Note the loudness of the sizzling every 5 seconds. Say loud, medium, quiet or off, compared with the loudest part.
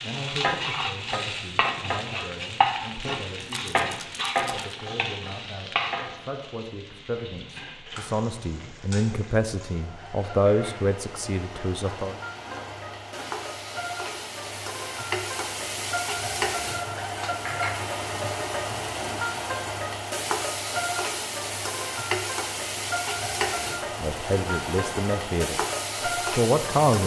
loud, medium, medium, loud, loud, loud.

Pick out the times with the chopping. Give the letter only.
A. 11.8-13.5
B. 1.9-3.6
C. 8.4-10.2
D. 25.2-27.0
A.